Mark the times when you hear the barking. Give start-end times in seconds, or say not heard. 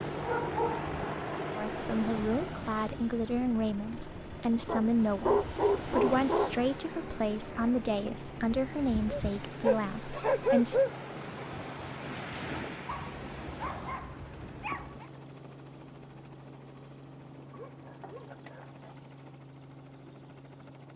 0.2-0.9, 4.7-6.5, 9.1-10.9, 12.8-15.1, 17.5-18.9.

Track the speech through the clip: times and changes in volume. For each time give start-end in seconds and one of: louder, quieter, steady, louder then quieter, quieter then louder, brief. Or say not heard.
1.6-10.8 steady.